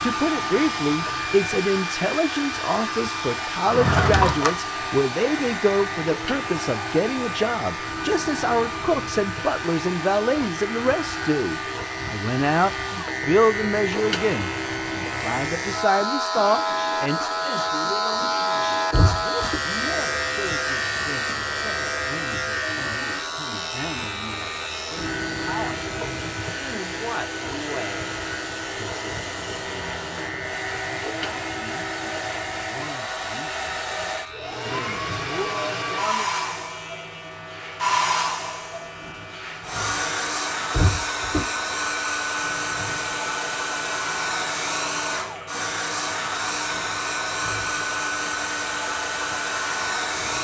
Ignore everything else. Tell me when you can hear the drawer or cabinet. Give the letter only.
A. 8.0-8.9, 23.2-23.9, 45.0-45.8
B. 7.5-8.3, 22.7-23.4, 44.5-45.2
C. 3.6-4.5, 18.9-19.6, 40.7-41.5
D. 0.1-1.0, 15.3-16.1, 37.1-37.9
C.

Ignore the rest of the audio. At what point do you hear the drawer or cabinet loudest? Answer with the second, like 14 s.
4 s.